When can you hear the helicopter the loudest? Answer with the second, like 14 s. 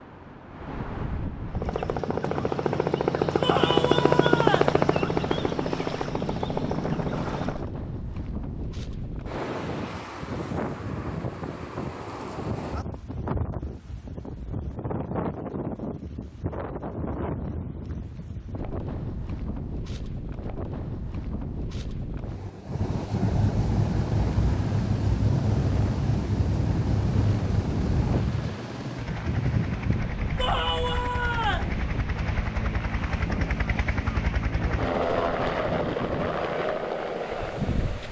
4 s.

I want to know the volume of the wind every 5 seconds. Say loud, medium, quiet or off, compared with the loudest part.
medium, medium, medium, medium, loud, loud, medium, medium.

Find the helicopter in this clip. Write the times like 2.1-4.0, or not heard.
1.4-7.7, 23.8-38.0.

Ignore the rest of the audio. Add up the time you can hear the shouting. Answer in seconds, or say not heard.
3 s.